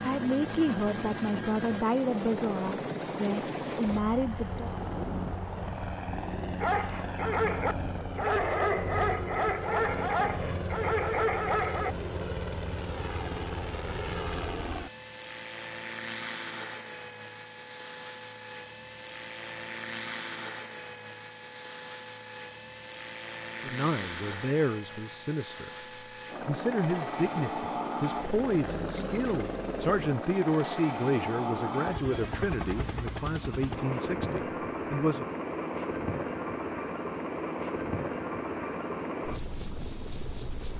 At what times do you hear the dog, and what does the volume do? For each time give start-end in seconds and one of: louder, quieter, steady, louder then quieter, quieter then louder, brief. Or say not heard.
6.6-11.9 steady.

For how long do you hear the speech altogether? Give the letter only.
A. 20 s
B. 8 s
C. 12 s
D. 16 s
D.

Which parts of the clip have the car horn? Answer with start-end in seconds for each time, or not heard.
not heard.